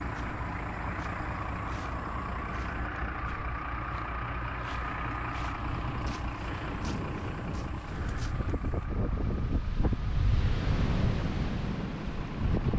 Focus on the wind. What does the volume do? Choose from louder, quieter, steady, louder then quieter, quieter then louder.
louder.